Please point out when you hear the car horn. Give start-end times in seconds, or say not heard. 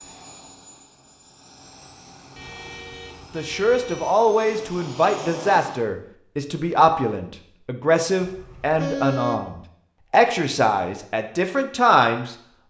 2.4-4.2, 8.2-9.5.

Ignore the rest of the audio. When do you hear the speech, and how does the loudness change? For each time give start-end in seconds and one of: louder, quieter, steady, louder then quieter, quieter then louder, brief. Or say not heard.
3.3-12.6 steady.